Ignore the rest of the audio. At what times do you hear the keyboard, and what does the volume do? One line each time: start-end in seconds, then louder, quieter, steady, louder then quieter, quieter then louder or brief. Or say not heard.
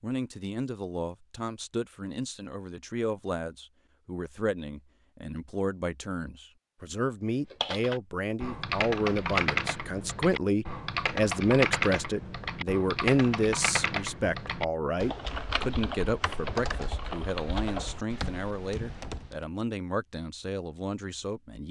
7.5-19.4 quieter.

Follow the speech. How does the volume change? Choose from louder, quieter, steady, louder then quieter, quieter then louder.
louder then quieter.